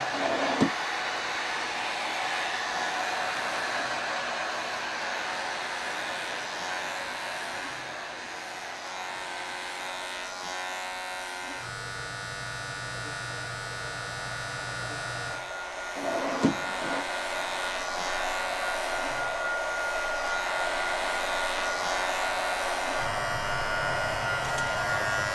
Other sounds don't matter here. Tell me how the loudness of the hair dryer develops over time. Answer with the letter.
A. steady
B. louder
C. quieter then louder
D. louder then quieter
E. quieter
C.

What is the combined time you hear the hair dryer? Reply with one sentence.
You can hear the hair dryer for 25 seconds altogether.